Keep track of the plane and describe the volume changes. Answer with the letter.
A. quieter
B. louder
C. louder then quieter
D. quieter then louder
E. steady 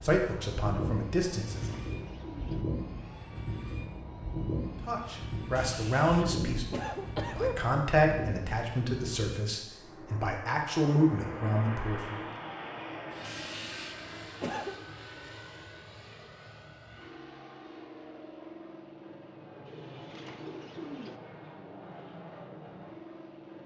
A.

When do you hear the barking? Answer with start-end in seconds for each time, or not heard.
not heard.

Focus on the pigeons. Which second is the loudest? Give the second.
21 s.